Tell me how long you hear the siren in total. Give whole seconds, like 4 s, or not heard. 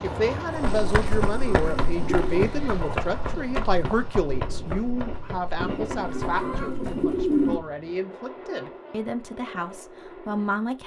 not heard.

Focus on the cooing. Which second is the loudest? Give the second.
7 s.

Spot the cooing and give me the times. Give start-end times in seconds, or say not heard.
0.7-2.5, 5.6-7.6.